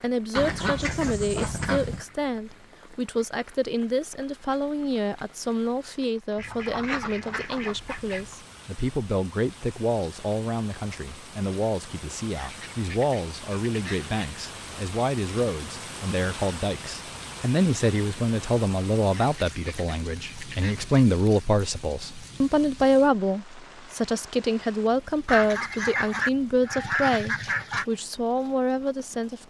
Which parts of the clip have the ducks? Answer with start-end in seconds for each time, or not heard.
0.3-2.0, 6.3-8.3, 12.4-14.1, 19.1-20.9, 25.2-27.9.